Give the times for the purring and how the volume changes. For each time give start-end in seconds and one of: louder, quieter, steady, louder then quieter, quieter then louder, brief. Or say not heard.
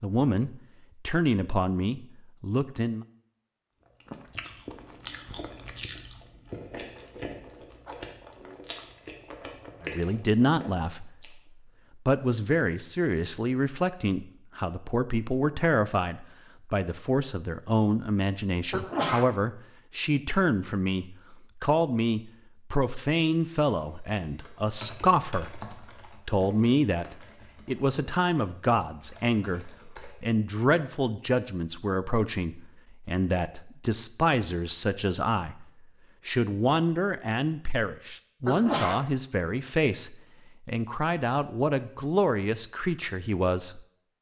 not heard.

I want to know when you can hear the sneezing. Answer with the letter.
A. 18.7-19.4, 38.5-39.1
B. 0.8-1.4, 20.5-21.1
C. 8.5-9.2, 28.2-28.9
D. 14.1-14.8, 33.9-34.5
A.